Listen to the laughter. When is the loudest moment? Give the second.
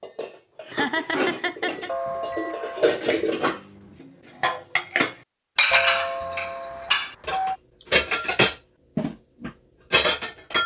1 s.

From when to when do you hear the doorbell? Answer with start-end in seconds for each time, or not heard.
1.9-3.0, 5.7-7.6.